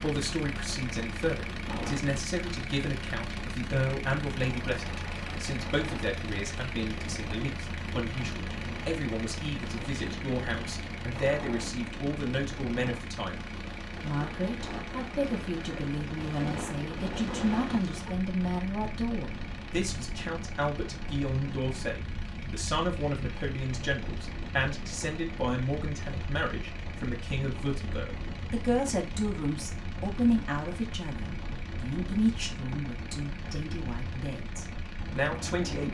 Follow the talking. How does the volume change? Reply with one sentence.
The volume of the talking stays about the same.